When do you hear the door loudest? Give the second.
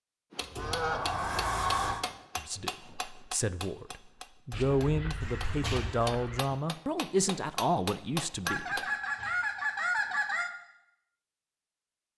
2 s.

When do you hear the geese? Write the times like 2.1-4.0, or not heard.
0.3-1.1, 4.5-6.5, 8.4-10.5.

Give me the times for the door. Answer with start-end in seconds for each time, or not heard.
0.6-2.0, 5.2-6.1, 9.0-9.7.